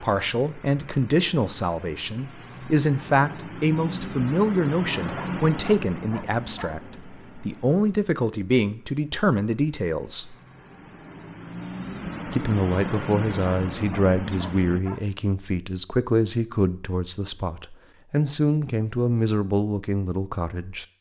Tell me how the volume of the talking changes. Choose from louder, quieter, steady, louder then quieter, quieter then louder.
steady.